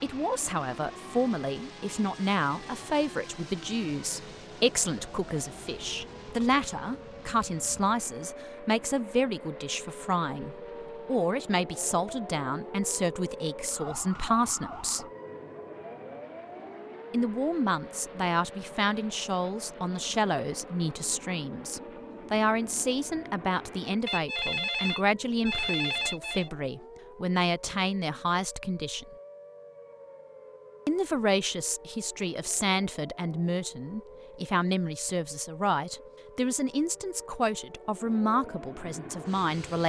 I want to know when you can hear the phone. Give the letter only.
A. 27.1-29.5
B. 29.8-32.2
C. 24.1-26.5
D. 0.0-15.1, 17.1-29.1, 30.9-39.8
C.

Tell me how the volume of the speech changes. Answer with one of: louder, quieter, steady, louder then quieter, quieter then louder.
steady.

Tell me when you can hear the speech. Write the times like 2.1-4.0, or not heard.
0.0-15.1, 17.1-29.1, 30.9-39.8.